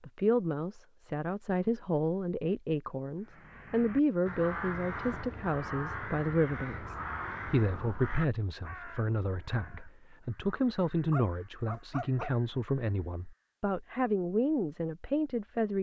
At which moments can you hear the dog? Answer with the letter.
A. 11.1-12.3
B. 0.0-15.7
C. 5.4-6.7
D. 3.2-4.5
A.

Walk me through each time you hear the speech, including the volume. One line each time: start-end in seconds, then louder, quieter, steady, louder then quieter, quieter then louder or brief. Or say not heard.
0.0-15.7 steady.